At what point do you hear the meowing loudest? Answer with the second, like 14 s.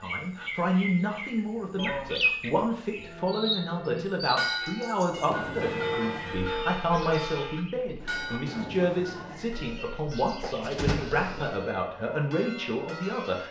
11 s.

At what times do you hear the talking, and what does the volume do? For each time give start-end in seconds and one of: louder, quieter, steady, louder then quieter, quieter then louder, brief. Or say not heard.
0.0-13.4 steady.